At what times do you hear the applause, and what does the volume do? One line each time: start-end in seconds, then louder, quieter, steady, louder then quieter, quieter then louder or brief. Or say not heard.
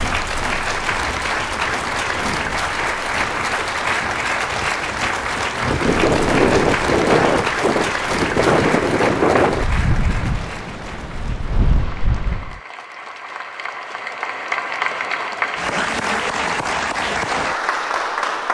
0.0-18.4 quieter then louder.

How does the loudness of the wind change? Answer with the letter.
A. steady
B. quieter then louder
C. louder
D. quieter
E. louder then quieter
E.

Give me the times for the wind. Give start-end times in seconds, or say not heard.
0.0-12.6.